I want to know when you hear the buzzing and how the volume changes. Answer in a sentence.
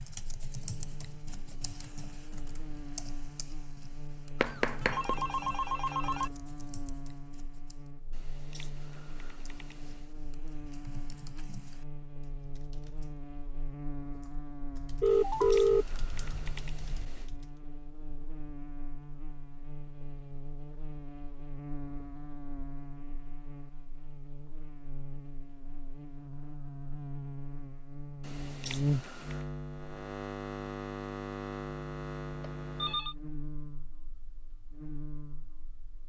You can hear the buzzing from 0.0 to 36.0 s, getting louder.